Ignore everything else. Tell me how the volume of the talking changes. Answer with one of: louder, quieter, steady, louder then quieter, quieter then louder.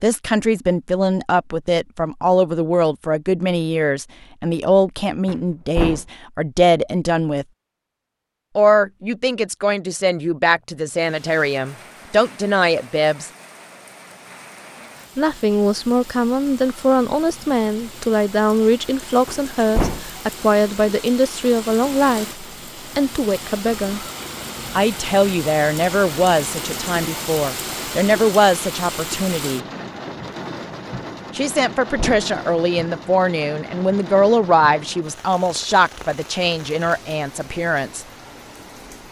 steady.